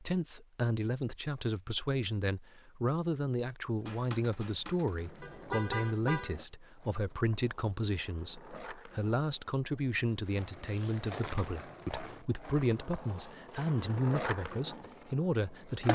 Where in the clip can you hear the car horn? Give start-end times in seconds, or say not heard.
5.2-6.4.